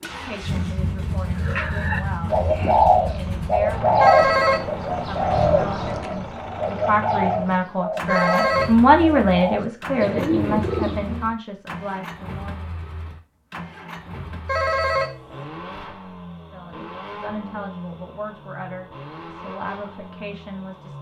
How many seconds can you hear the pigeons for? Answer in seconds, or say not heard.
10 s.